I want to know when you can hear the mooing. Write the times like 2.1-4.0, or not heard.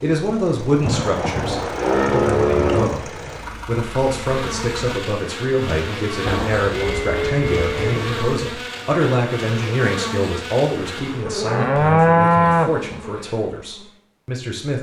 0.8-3.0, 6.2-8.2, 10.9-12.8.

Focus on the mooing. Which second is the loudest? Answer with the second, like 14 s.
12 s.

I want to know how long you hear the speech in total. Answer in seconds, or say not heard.
15 s.